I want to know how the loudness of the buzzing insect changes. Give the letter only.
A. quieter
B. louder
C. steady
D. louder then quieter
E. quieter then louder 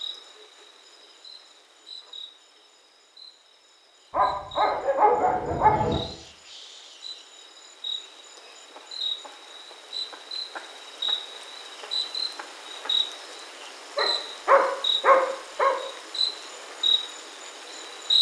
B.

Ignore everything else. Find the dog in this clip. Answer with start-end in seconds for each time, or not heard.
4.1-6.0, 13.9-15.8.